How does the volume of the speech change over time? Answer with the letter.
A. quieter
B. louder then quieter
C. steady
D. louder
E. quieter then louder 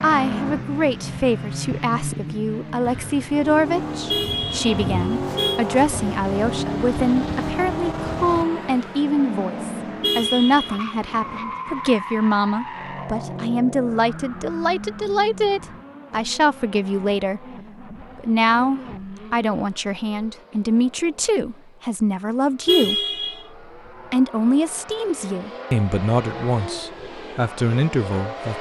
C.